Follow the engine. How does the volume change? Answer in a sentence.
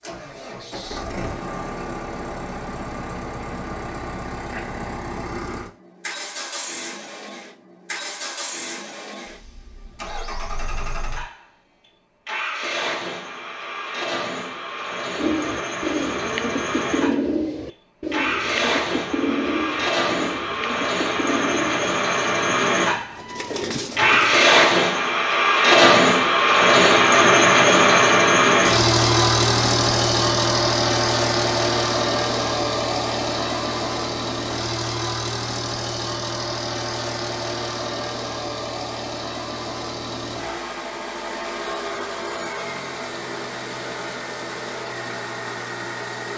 The volume of the engine goes up, then down.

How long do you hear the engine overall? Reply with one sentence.
You can hear the engine for 46 seconds altogether.